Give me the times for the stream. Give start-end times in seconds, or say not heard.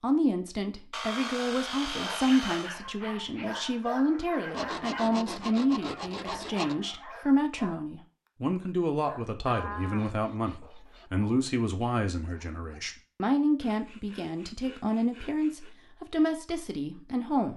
not heard.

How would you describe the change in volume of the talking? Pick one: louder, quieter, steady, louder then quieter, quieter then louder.
steady.